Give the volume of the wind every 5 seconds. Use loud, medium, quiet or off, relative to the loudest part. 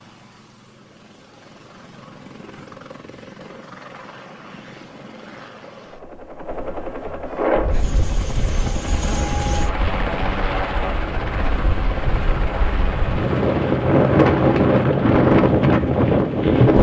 off, medium, medium, loud.